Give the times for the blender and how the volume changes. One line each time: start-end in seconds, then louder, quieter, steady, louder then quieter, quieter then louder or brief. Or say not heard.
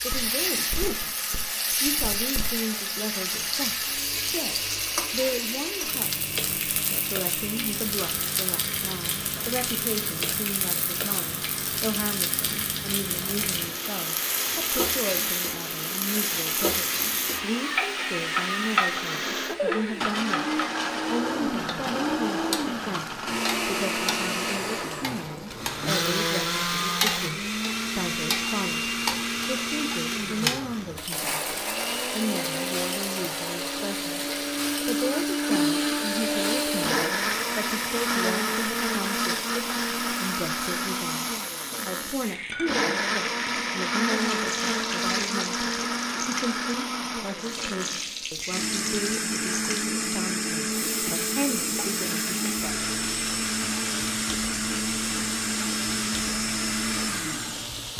0.0-57.9 louder.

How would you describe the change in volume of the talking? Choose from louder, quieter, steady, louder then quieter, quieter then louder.
steady.